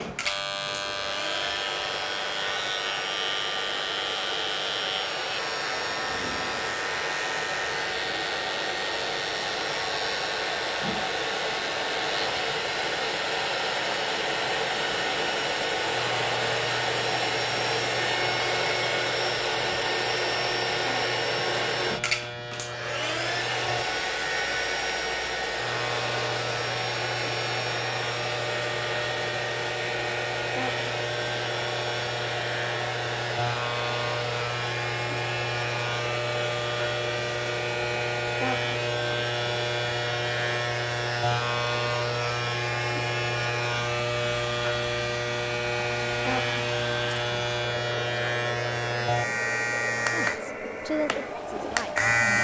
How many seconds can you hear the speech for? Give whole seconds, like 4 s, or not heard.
2 s.